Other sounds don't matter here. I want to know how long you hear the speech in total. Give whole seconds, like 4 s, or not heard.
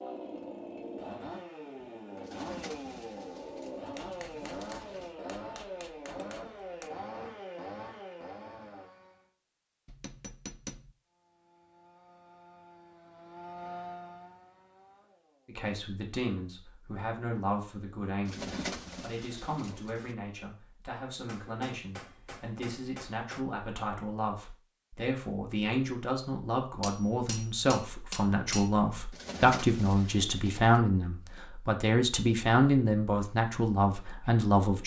19 s.